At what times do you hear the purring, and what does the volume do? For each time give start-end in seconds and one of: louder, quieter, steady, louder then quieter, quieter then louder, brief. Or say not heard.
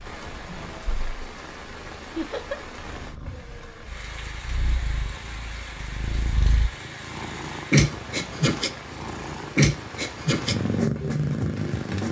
0.1-12.0 louder.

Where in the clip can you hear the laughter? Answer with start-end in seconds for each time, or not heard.
2.1-2.6.